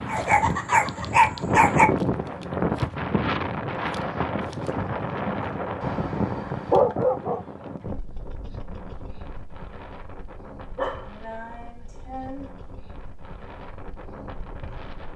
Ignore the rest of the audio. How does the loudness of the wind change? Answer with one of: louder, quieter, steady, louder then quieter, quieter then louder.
quieter.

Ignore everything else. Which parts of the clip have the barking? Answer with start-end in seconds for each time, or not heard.
0.1-1.9, 5.8-7.4, 10.8-12.5.